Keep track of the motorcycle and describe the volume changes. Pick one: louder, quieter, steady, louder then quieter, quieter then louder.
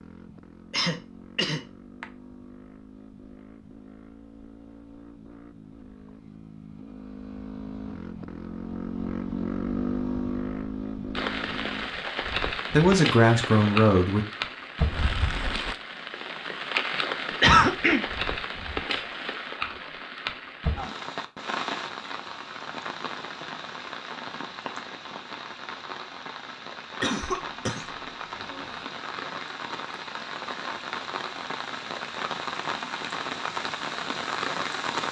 louder.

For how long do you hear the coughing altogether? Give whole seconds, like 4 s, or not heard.
4 s.